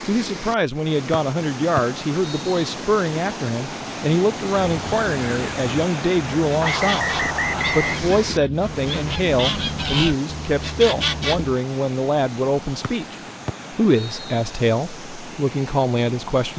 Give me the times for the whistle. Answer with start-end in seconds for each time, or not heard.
1.1-2.6, 6.6-8.0, 12.8-14.4.